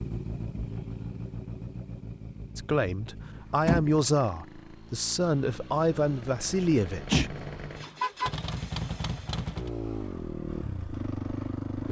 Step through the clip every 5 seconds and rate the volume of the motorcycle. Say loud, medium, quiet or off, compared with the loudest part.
medium, loud, loud.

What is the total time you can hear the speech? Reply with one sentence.
You can hear the speech for 5 seconds altogether.